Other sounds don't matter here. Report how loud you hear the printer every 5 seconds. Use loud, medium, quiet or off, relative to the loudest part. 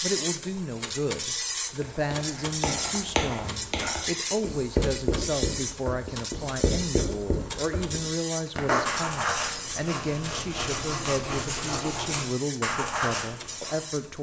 loud, loud, medium.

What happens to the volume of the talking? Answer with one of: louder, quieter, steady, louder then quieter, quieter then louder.
steady.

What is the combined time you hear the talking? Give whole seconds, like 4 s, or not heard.
14 s.